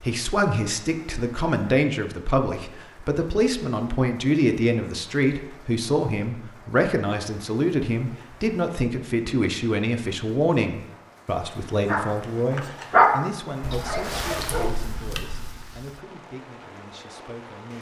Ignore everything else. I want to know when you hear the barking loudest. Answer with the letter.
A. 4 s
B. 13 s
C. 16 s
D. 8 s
B.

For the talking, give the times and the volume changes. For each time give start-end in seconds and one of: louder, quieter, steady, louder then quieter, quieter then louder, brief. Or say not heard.
0.0-17.7 quieter.